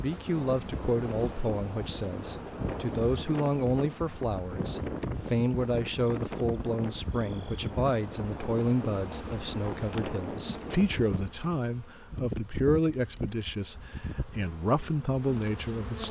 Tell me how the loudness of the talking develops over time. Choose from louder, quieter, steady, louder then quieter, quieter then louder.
steady.